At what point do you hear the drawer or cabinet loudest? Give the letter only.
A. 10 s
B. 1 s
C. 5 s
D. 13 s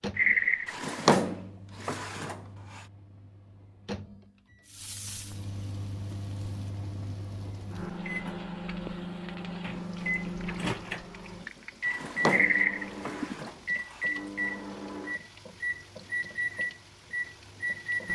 B.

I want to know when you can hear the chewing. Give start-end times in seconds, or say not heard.
not heard.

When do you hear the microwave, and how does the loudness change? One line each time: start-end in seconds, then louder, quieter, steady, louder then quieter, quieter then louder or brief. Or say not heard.
0.0-18.1 louder.